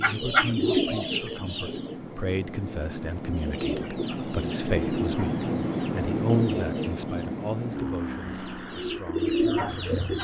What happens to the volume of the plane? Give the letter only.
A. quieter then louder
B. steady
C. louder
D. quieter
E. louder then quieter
E.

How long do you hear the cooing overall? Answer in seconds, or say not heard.
8 s.